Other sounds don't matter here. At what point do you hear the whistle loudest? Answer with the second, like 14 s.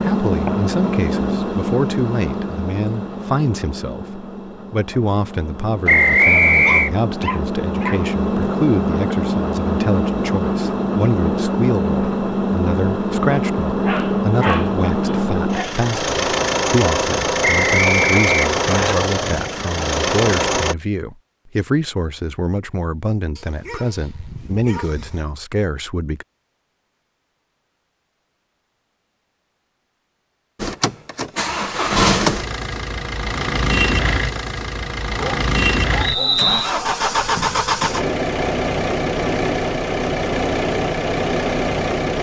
6 s.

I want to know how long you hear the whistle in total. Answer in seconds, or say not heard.
3 s.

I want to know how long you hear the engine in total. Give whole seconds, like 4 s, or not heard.
32 s.